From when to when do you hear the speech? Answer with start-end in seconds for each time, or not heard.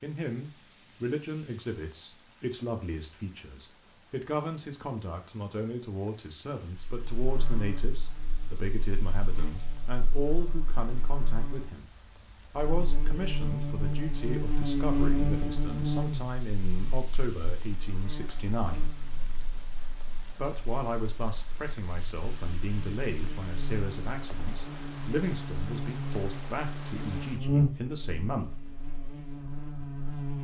0.0-11.9, 12.5-18.9, 20.4-28.5.